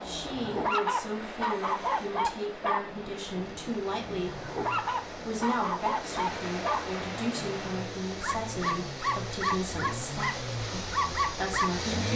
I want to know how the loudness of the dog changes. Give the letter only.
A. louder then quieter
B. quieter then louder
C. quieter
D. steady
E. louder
D.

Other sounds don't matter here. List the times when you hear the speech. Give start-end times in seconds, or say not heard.
0.0-4.5, 5.1-12.1.